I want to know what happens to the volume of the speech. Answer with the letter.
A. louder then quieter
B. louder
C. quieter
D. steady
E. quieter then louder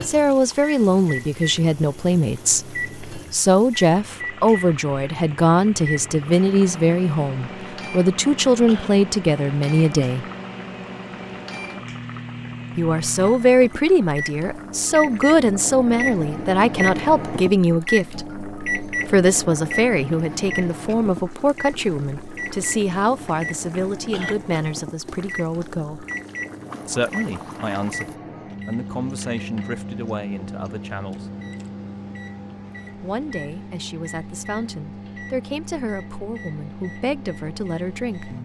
C.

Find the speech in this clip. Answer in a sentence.
The speech can be heard from 0.0 to 10.2 s, from 12.8 to 26.1 s, from 26.9 to 31.3 s and from 32.9 to 38.3 s.